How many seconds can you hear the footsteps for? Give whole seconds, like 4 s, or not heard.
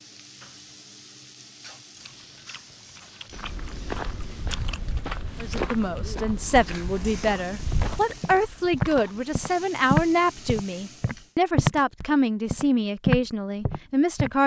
11 s.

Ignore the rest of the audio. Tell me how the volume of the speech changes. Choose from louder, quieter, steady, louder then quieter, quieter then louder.
steady.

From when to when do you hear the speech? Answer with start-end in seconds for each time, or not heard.
5.4-14.4.